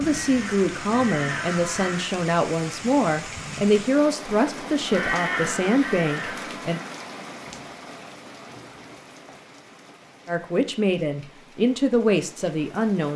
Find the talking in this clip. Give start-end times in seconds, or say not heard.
0.0-6.8, 10.2-13.1.